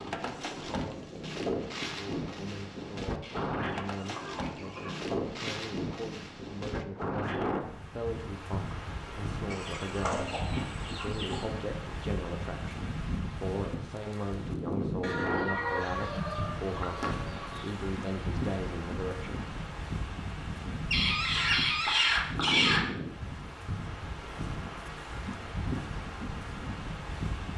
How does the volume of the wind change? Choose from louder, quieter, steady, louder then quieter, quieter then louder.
steady.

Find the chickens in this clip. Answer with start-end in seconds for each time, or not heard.
3.2-5.0, 9.5-11.4, 15.0-17.6, 20.9-22.8.